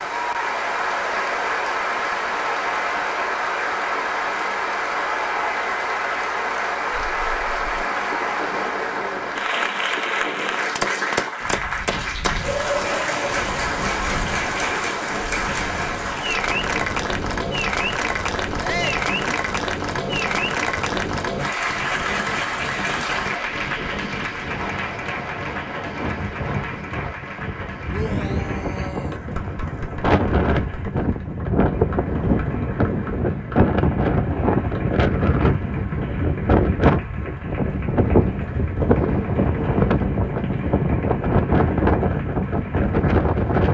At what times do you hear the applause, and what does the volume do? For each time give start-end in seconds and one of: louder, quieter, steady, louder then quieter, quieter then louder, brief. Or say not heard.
0.0-43.6 quieter.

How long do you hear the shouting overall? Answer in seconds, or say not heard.
2 s.